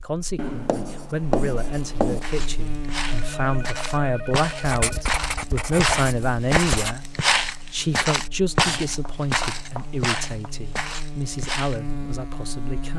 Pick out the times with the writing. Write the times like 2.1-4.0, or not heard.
0.3-2.2, 4.6-7.0, 8.6-10.6.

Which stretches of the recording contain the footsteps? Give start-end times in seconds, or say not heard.
2.2-11.8.